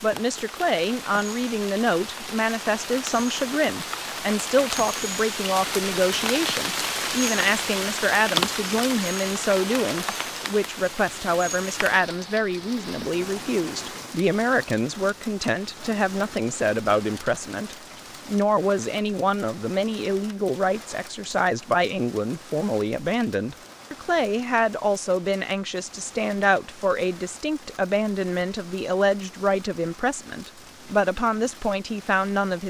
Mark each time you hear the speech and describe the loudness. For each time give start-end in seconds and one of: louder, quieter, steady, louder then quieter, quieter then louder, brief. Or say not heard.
0.0-32.6 steady.